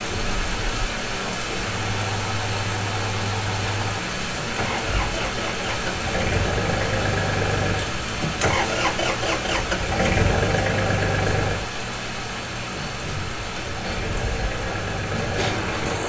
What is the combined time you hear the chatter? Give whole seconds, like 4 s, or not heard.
not heard.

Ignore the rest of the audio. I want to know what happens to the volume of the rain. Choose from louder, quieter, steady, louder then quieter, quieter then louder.
steady.